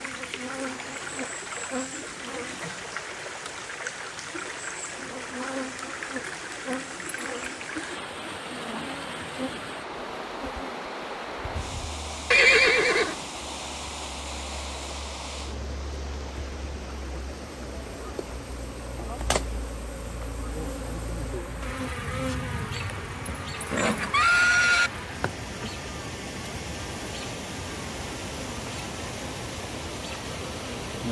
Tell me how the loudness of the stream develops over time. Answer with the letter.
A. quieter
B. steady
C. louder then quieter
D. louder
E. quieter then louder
E.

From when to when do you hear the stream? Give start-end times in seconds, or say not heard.
0.0-31.0.